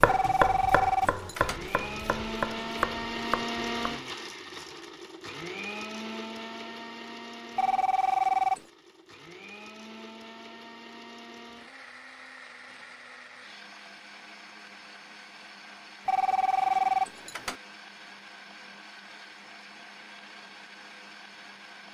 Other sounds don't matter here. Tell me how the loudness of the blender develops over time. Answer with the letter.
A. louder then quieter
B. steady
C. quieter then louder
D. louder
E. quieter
E.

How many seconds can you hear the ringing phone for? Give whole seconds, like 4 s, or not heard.
4 s.